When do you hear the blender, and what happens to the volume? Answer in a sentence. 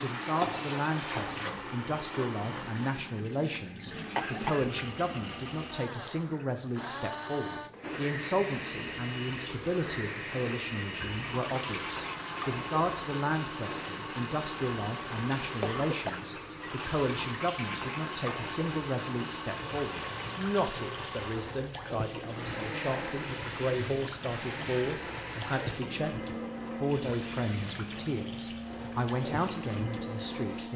The blender can be heard from 0.0 to 30.7 s, at a steady volume.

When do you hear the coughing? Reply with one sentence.
The coughing can be heard from 4.2 to 5.2 s, from 14.9 to 16.2 s and from 24.0 to 24.9 s.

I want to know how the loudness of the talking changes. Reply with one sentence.
The loudness of the talking stays about the same.